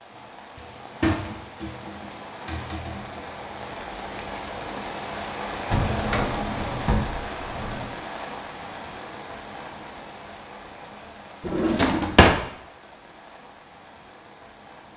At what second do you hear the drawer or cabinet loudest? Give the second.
12 s.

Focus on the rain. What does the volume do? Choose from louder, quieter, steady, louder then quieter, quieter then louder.
louder then quieter.